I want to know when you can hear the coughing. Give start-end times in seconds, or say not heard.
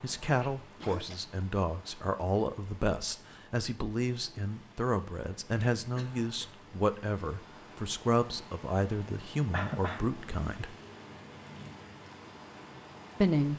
0.4-1.2, 6.0-6.7, 9.5-10.1.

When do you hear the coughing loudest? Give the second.
10 s.